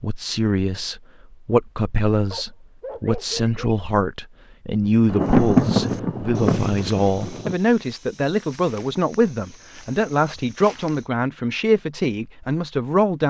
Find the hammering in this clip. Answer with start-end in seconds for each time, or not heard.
not heard.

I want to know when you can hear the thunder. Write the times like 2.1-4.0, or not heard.
5.0-7.5.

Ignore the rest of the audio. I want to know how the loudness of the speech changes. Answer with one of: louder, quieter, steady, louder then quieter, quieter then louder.
steady.